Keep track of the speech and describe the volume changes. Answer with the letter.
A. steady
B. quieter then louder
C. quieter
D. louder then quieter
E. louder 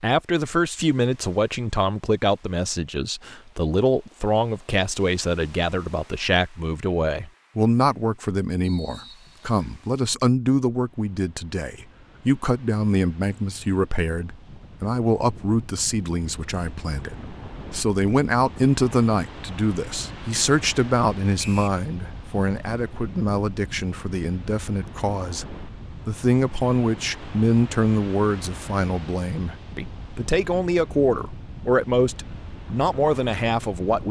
A.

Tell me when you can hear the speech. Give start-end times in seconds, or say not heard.
0.0-34.0.